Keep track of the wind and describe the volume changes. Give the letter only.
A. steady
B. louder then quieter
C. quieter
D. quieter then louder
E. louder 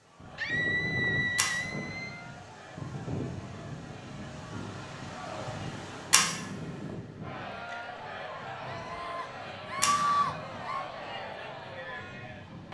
C.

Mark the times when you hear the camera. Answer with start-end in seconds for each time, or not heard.
1.4-2.2, 6.1-7.0, 9.8-10.6.